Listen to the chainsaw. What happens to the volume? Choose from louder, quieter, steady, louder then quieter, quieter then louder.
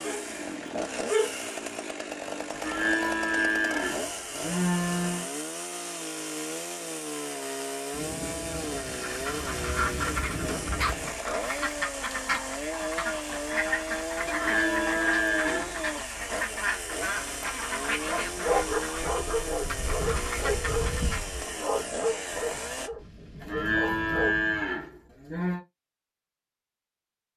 steady.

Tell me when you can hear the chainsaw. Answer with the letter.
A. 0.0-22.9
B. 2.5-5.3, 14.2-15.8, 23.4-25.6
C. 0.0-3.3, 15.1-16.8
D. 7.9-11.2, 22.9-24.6
A.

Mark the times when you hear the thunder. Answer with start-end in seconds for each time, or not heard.
7.9-11.2, 22.9-24.6.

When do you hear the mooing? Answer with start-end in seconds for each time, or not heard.
2.5-5.3, 14.2-15.8, 23.4-25.6.